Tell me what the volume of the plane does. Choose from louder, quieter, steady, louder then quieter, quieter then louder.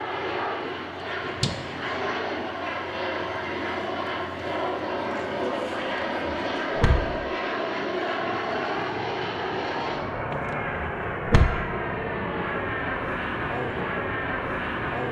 steady.